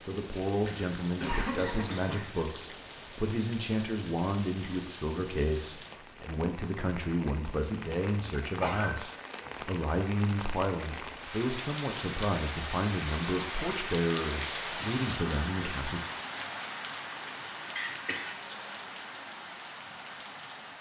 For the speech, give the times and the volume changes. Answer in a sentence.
The speech can be heard from 0.1 to 16.0 s, at a steady volume.